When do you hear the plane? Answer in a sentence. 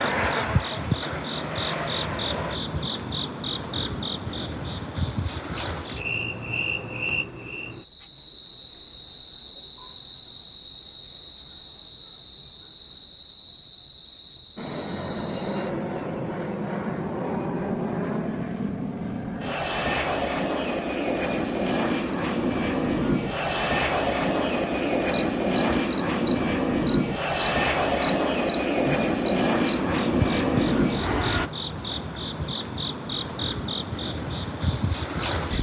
You can hear the plane from 0.0 to 2.6 s and from 14.6 to 31.5 s.